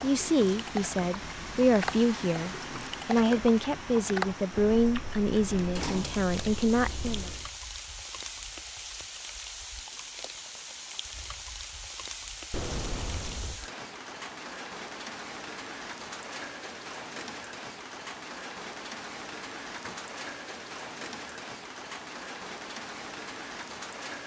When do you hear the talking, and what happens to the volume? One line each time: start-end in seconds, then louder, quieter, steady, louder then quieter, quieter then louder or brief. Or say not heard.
0.0-7.3 steady.